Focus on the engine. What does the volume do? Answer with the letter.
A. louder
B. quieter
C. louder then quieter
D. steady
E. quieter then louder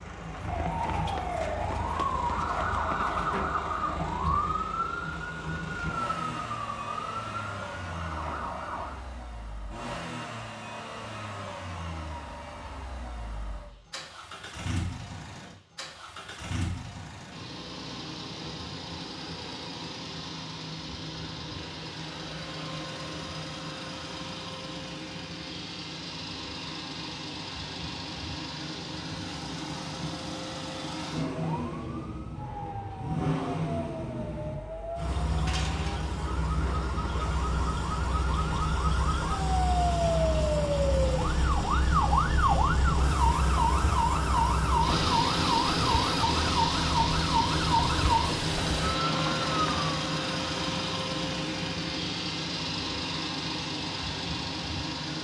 A.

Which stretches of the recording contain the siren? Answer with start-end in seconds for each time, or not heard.
0.0-9.1, 31.4-50.0.